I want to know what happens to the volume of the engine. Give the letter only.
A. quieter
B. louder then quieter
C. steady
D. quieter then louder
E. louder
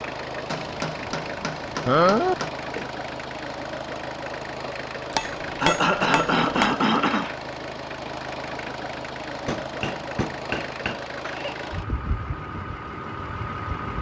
C.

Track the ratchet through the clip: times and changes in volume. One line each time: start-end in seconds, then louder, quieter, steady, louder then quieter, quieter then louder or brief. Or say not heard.
not heard.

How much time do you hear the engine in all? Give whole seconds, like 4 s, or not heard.
14 s.